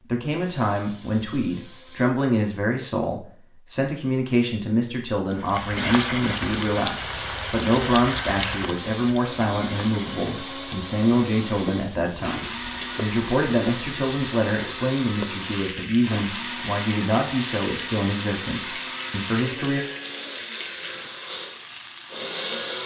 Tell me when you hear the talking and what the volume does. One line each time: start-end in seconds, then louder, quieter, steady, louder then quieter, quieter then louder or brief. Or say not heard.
0.1-19.9 steady.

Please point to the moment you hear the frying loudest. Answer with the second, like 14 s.
6 s.